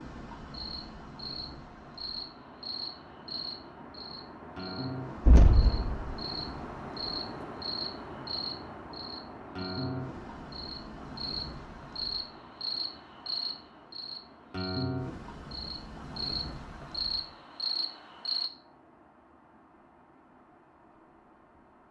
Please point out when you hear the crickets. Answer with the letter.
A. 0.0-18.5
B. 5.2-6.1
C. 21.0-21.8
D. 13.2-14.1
A.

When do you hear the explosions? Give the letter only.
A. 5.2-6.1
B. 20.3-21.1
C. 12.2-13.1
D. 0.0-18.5
A.